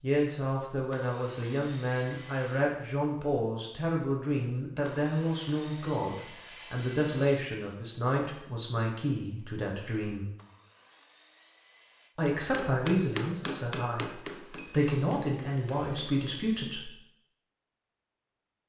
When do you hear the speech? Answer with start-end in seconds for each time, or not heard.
0.0-10.2, 12.2-16.9.